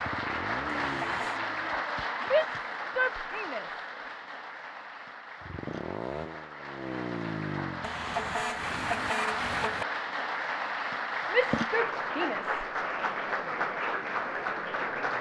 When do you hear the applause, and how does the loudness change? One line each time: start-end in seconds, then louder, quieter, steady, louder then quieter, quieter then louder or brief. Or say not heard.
0.0-15.1 quieter then louder.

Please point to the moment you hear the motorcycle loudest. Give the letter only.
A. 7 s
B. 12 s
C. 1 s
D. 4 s
A.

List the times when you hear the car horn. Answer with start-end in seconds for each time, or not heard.
0.8-1.4, 7.8-9.8.